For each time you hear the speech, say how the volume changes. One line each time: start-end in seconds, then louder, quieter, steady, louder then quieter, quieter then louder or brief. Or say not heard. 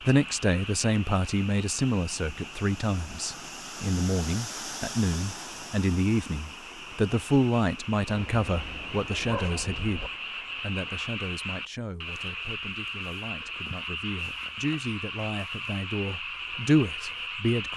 0.0-17.7 quieter then louder.